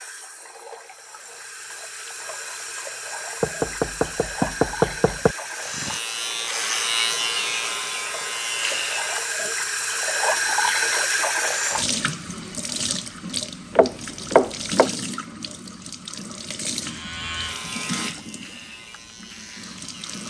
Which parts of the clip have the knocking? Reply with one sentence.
You can hear the knocking from 3.4 to 5.3 s and from 13.8 to 14.9 s.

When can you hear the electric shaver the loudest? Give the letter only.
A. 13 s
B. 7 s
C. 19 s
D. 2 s
B.